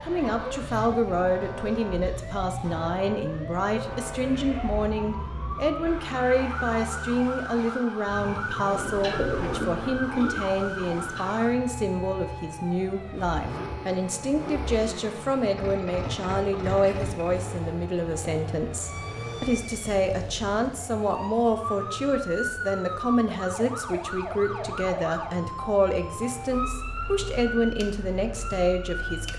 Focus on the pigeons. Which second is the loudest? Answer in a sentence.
The volume of the pigeons peaks at 9 seconds.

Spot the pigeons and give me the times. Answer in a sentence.
You can hear the pigeons from 8.7 to 11.3 s.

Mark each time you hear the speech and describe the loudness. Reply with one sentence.
You can hear the speech from 0.0 to 29.3 s, at a steady volume.